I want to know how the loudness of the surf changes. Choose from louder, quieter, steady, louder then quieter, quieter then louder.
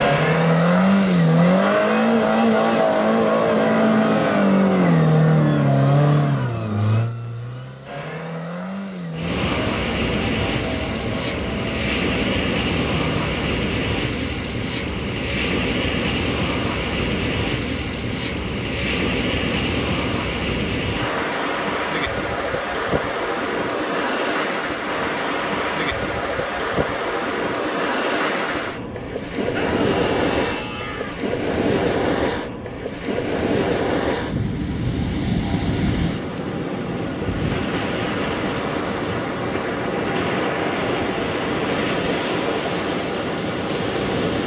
steady.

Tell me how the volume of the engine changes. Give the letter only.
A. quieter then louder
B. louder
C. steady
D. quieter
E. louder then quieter
D.